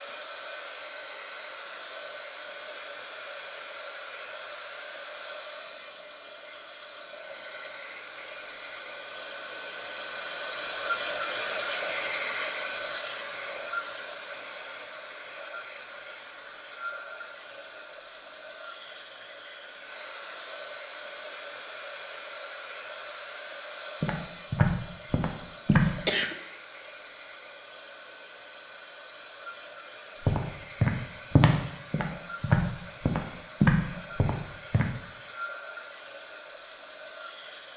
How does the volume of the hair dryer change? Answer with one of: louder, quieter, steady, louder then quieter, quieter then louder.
louder then quieter.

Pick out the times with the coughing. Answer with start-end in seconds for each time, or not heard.
25.7-26.4.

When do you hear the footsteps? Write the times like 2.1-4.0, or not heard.
24.0-25.9, 30.2-34.9.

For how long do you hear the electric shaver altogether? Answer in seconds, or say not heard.
not heard.